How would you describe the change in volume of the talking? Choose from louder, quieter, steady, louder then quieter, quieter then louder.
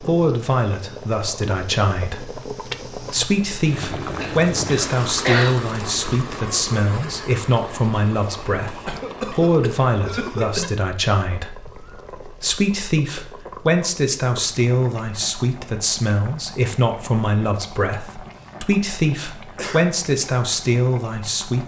steady.